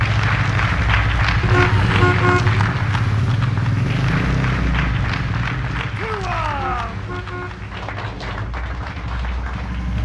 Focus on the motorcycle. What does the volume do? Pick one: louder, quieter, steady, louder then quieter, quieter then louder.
quieter.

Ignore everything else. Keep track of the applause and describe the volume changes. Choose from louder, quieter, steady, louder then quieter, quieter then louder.
quieter.